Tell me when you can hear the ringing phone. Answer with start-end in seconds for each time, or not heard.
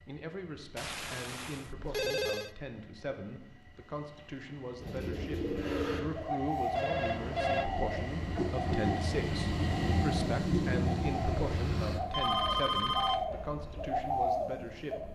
0.8-2.5, 6.7-7.7, 12.1-13.2.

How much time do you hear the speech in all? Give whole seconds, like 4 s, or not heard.
15 s.